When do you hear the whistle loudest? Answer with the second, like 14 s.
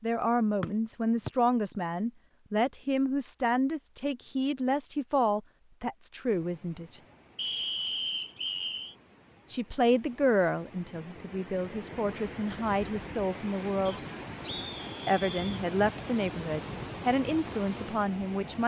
8 s.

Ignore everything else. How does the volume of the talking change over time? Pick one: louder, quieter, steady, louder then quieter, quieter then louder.
steady.